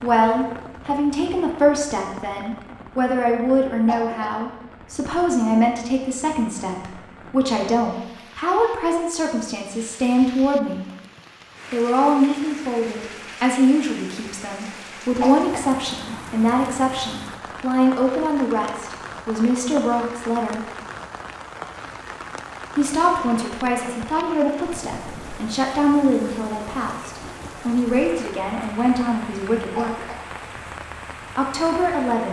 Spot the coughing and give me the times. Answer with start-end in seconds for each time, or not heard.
3.9-4.4, 15.2-15.8, 29.8-30.2.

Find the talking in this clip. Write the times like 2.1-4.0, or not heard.
0.0-10.8, 11.7-20.6, 22.8-30.1, 31.4-32.2.